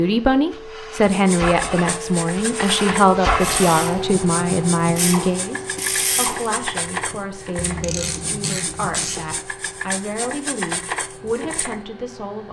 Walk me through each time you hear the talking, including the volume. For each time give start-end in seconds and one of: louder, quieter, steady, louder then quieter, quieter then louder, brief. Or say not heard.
0.0-12.4 quieter.